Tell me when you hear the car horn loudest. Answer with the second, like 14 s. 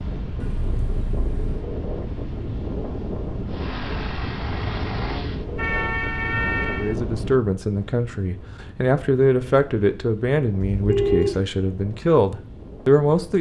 11 s.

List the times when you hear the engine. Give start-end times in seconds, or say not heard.
3.5-5.5.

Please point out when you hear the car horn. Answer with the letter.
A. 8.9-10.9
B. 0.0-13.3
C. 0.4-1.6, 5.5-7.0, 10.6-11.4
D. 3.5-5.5
C.